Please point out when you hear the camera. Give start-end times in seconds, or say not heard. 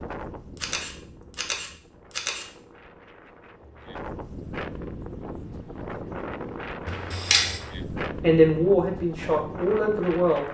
0.6-2.5, 6.8-7.6.